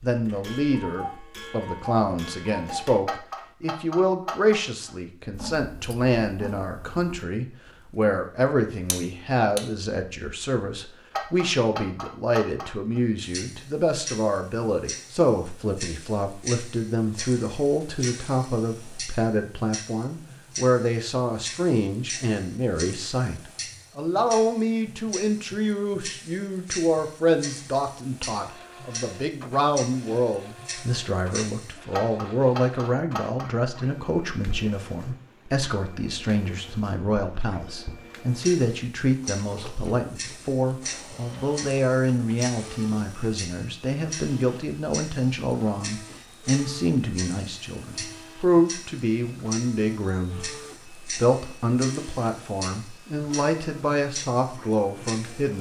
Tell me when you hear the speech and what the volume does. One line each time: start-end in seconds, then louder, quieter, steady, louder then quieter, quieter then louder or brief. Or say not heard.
0.0-55.5 steady.